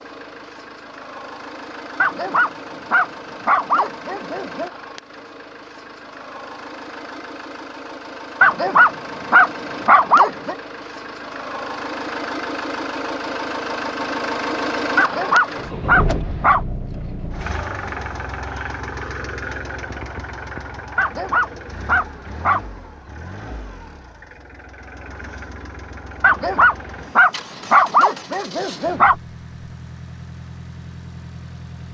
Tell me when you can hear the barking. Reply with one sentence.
You can hear the barking from 2.0 to 4.7 s, from 8.4 to 10.6 s, from 14.9 to 16.6 s, from 20.9 to 22.6 s and from 26.2 to 29.1 s.